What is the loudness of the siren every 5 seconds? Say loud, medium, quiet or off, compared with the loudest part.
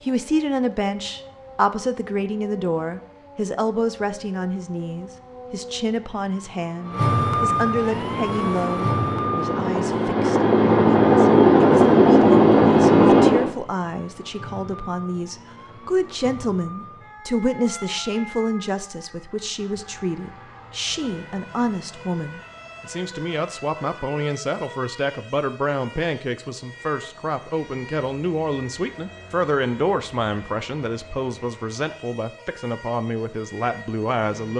quiet, loud, quiet, quiet, quiet, quiet, quiet.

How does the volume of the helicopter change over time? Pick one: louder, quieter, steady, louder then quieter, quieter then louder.
louder.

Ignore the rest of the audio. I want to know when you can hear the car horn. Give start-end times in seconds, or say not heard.
not heard.